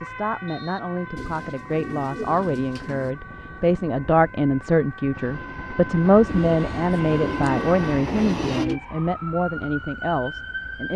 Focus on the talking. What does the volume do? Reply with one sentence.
The loudness of the talking goes up, then down.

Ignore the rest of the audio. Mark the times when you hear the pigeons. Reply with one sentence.
You can hear the pigeons from 1.1 to 3.1 s and from 6.2 to 8.8 s.